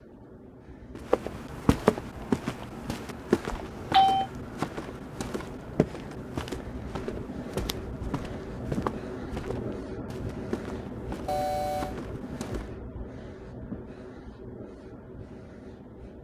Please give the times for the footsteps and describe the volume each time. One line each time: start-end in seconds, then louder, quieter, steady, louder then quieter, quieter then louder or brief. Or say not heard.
0.9-12.7 quieter.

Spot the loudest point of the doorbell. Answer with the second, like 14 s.
4 s.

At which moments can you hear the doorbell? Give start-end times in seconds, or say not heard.
3.5-4.2, 11.2-11.9.